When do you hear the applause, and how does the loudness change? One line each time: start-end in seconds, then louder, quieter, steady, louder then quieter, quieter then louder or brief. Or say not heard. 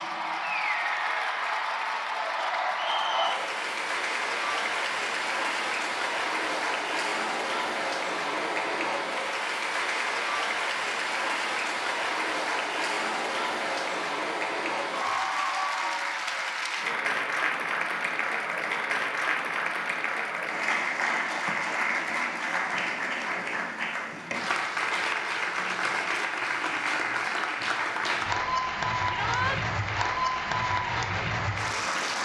0.0-32.2 steady.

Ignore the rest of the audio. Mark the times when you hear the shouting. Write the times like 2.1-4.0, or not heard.
29.1-29.6.